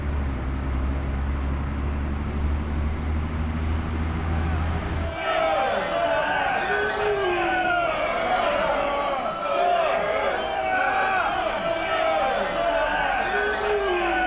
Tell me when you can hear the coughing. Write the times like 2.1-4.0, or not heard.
not heard.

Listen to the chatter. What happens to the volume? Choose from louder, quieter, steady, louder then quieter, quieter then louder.
steady.